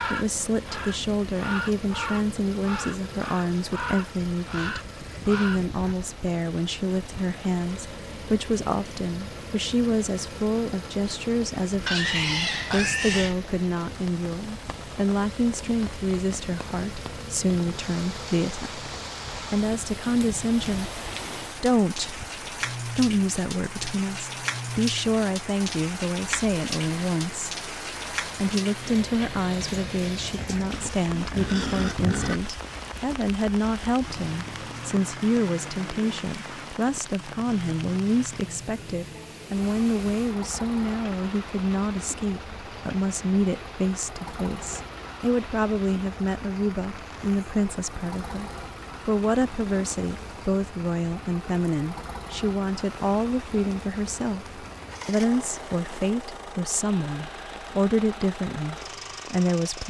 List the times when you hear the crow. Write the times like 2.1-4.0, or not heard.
0.0-6.0.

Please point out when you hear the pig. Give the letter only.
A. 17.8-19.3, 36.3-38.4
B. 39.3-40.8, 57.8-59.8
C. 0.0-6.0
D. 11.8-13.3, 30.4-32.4
D.